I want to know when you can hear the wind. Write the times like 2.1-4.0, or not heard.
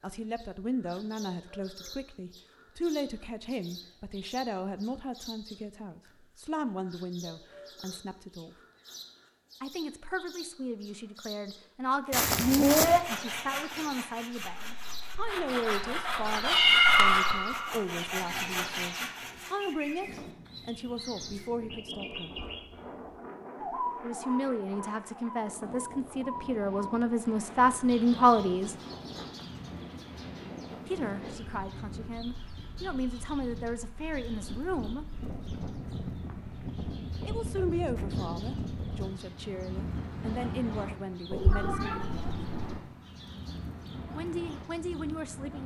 20.0-45.6.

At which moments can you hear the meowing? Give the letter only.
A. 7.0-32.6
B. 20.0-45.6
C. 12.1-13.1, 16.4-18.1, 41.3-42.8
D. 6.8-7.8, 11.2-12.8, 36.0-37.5
C.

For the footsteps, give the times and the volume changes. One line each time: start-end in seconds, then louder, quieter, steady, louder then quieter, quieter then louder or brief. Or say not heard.
not heard.